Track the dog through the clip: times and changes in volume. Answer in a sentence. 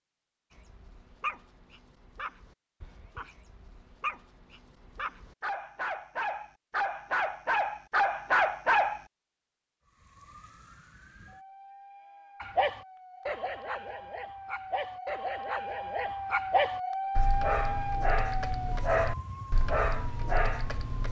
You can hear the dog from 0.5 to 9.0 s, getting quieter then louder; and from 12.4 to 21.0 s, getting louder.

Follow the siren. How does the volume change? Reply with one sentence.
The volume of the siren goes up, then down.